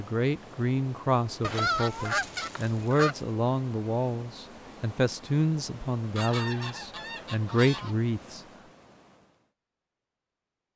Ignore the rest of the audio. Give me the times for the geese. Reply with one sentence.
The geese can be heard from 1.4 to 3.2 s and from 6.2 to 8.0 s.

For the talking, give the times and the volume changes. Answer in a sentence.
You can hear the talking from 0.0 to 8.4 s, at a steady volume.